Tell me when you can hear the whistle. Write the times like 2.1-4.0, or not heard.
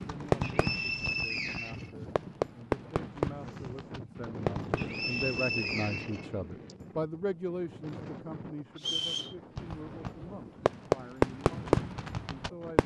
0.4-1.9, 4.8-6.8, 8.8-9.3.